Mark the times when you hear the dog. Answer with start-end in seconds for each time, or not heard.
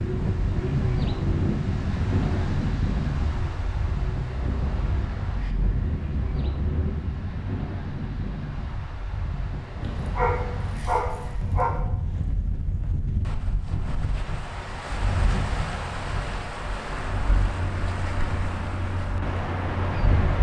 9.8-11.8.